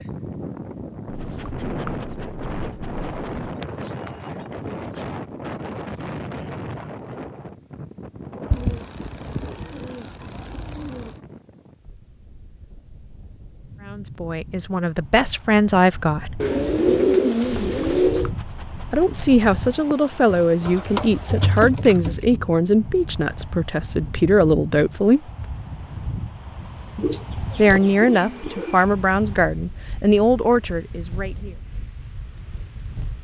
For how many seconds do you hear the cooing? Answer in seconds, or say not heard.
10 s.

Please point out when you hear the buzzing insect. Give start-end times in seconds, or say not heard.
not heard.